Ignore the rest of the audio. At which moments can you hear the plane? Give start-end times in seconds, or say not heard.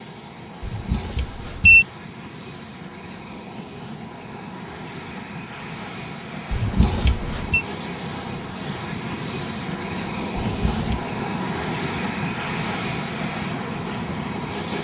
0.0-14.7.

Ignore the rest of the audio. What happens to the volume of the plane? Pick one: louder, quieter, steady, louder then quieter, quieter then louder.
louder.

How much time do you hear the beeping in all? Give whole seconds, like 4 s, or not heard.
3 s.